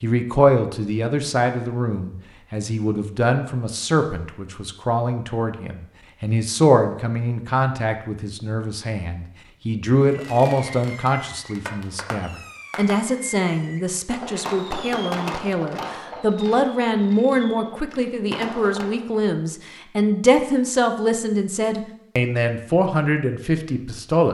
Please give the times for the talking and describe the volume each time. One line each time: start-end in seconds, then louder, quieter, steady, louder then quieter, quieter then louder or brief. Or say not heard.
0.0-24.2 steady.